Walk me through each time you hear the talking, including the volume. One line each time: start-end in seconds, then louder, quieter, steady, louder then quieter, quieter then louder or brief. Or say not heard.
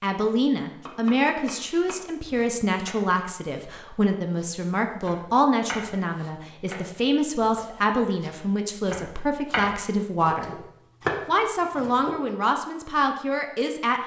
0.0-10.7 steady
11.2-14.0 brief.